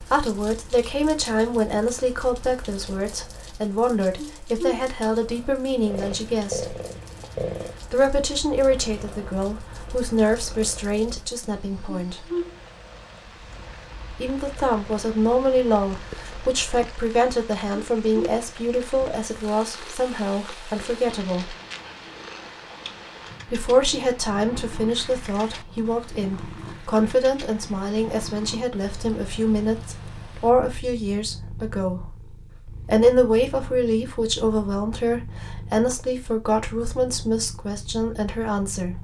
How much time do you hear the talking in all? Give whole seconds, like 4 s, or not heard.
34 s.